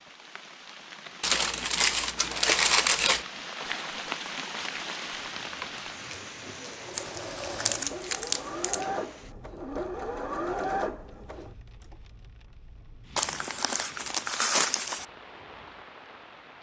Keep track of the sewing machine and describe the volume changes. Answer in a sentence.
The volume of the sewing machine goes up.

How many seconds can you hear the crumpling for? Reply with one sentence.
The crumpling can be heard for 6 seconds in total.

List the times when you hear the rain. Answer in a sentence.
You can hear the rain from 0.0 to 16.5 s.